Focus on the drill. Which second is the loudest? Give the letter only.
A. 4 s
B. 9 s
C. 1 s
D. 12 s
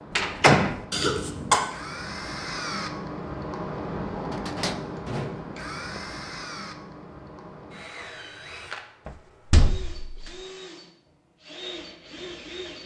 A.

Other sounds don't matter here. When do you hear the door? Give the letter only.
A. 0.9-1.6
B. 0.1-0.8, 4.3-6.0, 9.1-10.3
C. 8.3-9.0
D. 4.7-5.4
B.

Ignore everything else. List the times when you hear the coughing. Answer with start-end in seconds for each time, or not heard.
0.9-1.6.